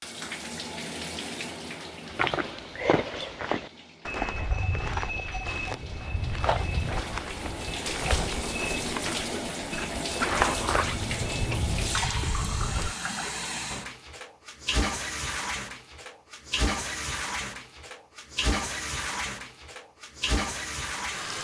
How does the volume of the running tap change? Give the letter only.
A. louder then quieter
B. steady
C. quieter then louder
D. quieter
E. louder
E.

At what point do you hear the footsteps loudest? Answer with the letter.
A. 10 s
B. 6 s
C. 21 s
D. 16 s
A.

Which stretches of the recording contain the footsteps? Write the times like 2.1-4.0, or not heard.
2.0-12.9.